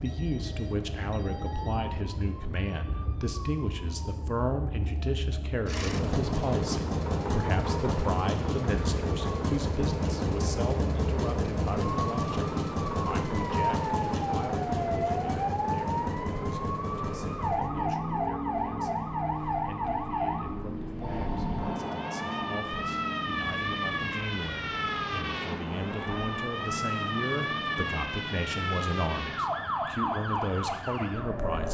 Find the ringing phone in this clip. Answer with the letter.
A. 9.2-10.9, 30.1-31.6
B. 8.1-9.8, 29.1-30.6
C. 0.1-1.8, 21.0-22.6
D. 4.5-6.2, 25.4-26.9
C.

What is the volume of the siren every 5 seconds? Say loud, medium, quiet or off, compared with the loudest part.
medium, medium, loud, loud, loud, loud, loud.